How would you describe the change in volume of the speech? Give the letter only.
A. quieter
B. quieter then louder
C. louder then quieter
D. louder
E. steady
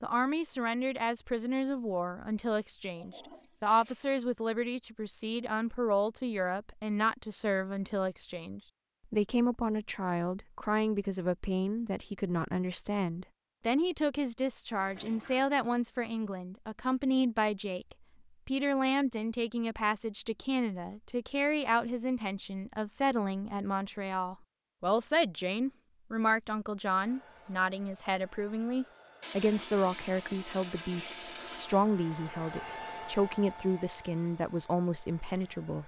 E.